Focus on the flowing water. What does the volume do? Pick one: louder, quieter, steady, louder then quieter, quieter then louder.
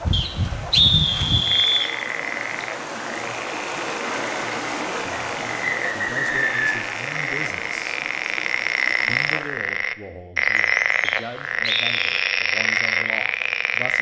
louder then quieter.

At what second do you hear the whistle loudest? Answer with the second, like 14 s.
1 s.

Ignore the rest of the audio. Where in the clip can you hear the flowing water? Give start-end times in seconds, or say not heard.
0.0-9.6.